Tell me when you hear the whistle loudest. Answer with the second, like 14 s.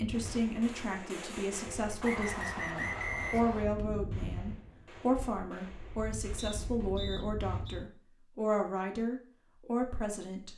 3 s.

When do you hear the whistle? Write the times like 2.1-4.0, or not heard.
2.0-3.6, 6.3-7.8.